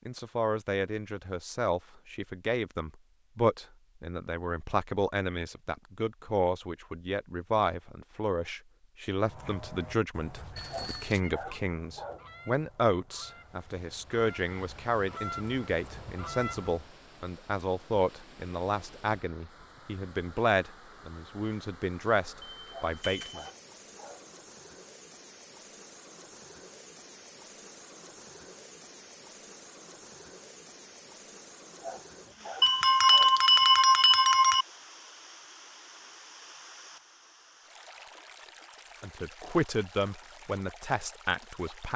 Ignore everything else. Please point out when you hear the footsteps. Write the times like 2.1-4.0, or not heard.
not heard.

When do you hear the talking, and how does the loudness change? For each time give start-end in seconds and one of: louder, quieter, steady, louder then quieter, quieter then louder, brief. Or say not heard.
0.1-23.4 steady
39.0-41.9 brief.